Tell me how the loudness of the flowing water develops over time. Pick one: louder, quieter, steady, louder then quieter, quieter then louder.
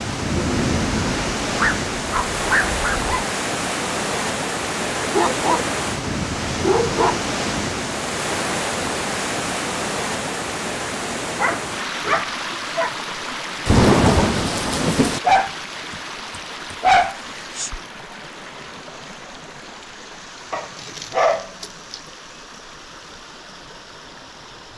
quieter.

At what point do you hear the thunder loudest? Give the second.
14 s.